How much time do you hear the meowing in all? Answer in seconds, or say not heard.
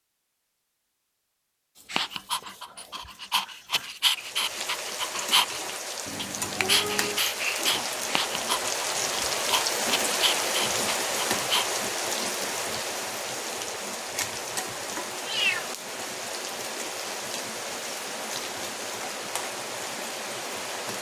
2 s.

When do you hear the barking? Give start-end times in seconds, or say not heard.
1.9-11.8.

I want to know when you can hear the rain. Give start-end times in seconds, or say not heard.
4.1-20.9.